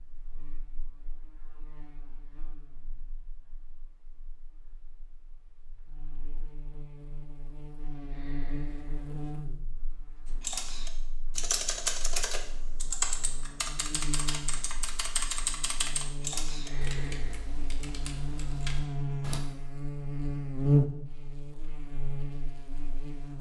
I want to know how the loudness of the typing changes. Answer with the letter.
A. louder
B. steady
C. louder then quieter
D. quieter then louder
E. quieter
E.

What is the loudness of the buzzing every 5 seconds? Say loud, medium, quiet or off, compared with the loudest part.
quiet, quiet, quiet, medium, loud.